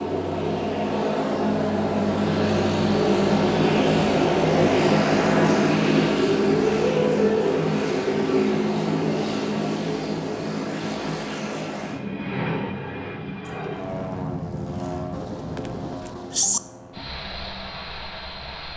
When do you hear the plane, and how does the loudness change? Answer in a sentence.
You can hear the plane from 0.0 to 18.7 s, getting quieter.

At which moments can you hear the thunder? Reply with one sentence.
You can hear the thunder from 15.1 to 16.6 s.